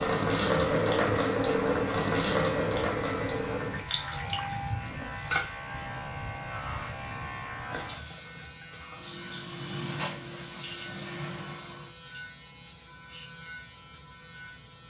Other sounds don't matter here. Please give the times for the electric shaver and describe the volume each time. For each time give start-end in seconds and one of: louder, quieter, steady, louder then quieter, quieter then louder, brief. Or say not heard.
0.0-14.8 quieter.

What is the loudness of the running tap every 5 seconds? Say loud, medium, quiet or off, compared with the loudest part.
loud, medium, medium.